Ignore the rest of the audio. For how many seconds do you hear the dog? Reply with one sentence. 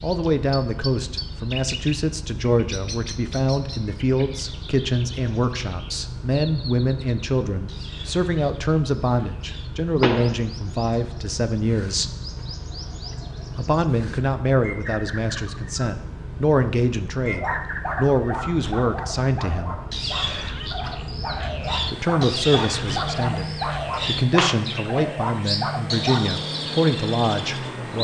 The dog can be heard for 9 seconds in total.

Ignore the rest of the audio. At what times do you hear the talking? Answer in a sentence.
You can hear the talking from 0.0 to 12.1 s, from 13.6 to 19.8 s and from 21.9 to 27.9 s.